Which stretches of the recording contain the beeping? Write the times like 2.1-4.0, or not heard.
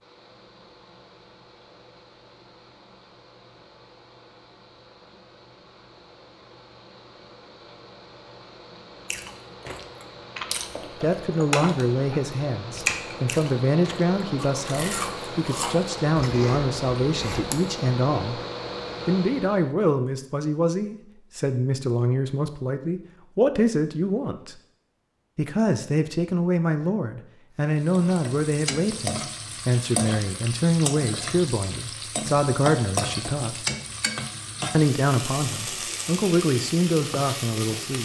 not heard.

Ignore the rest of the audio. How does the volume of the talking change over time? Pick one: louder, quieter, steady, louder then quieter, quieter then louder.
steady.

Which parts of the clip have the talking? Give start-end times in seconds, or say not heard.
10.9-18.4, 19.1-24.6, 25.4-33.6, 34.7-37.9.